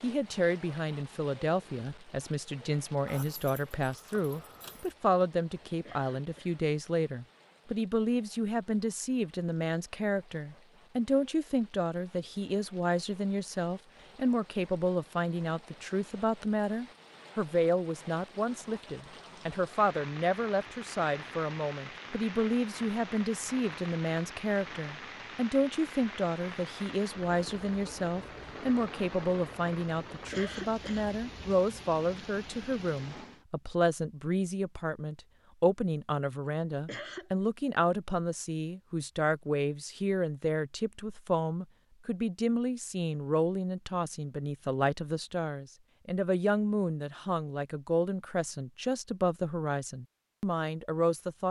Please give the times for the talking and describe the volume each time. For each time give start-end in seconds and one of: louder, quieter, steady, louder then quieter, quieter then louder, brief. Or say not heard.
0.0-51.4 steady.